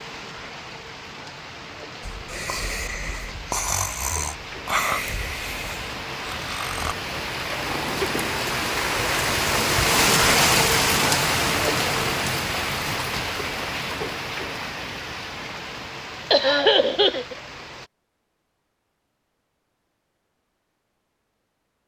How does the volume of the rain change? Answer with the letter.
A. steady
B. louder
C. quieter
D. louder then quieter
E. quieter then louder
D.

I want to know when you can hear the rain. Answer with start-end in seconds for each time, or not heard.
0.0-17.9.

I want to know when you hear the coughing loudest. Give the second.
17 s.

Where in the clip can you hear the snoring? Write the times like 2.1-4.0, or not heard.
2.0-8.1.